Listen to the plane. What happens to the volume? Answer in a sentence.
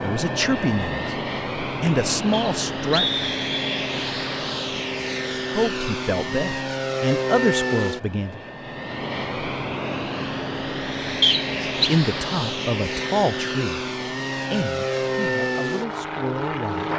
The volume of the plane stays about the same.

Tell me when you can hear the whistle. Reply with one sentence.
You can hear the whistle from 2.3 to 3.9 s and from 11.2 to 11.9 s.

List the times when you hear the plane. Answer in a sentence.
You can hear the plane from 0.0 to 16.9 s.